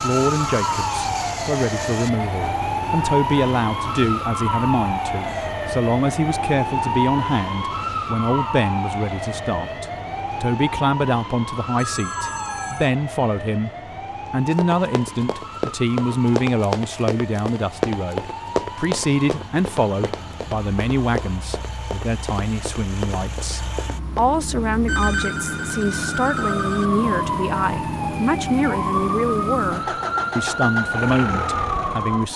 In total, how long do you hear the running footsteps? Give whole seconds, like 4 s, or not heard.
10 s.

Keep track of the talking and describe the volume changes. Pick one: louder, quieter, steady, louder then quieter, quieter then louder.
steady.